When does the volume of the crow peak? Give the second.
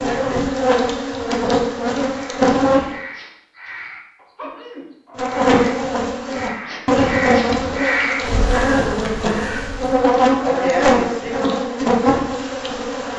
8 s.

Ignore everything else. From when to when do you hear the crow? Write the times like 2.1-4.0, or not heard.
2.1-10.0.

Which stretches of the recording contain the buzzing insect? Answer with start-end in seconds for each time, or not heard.
0.0-3.0, 5.2-13.1.